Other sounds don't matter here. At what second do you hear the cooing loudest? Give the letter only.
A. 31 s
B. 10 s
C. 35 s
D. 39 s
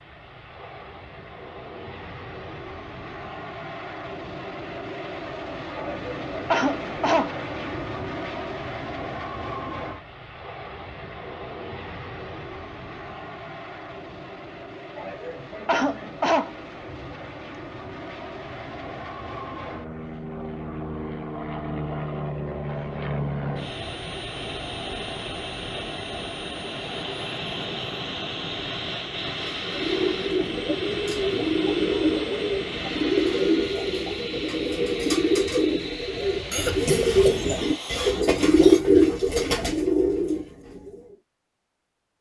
D.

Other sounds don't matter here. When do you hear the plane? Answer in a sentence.
You can hear the plane from 0.0 to 38.2 s.